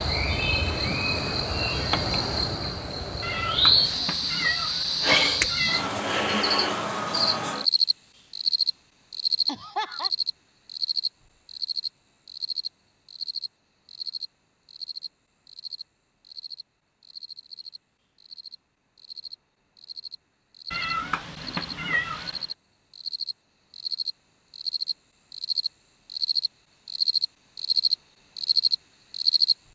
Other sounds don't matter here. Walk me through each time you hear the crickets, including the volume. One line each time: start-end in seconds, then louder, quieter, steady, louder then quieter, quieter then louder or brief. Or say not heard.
0.0-29.6 quieter then louder.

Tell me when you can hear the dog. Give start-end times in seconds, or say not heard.
not heard.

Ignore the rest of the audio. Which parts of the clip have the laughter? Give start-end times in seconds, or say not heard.
9.4-10.1.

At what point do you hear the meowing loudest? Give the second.
5 s.